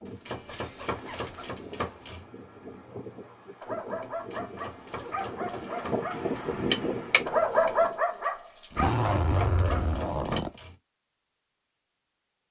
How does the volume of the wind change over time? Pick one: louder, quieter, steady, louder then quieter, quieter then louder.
louder.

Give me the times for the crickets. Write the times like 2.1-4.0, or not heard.
not heard.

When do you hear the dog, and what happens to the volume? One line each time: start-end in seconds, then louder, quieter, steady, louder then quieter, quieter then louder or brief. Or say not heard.
3.1-10.4 louder then quieter.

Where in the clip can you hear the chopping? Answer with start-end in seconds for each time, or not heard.
0.2-2.2, 4.3-6.3, 8.8-10.8.